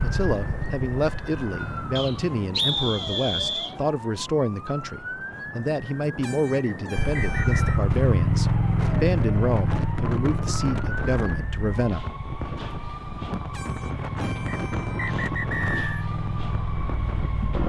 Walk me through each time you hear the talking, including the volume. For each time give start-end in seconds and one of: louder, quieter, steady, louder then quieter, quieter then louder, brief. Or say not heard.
0.0-12.0 steady.